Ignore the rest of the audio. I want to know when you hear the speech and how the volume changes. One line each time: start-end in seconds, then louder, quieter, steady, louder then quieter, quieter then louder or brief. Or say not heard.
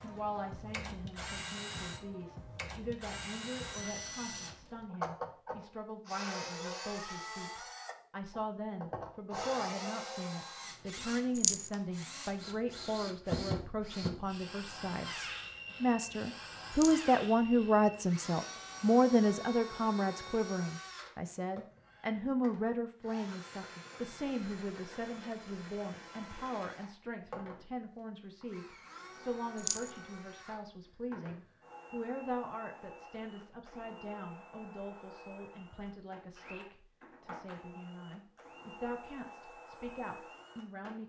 0.0-41.0 louder then quieter.